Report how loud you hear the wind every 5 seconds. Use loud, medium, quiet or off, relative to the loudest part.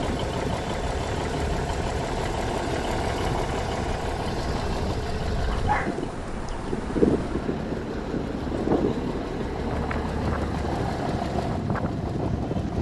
medium, loud, loud.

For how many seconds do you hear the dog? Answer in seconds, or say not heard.
2 s.